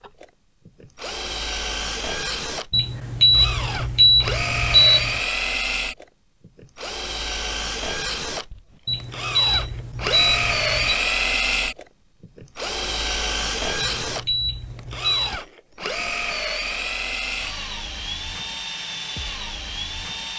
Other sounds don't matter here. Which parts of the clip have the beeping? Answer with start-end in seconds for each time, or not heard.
2.7-5.2, 8.8-10.9, 13.8-15.3.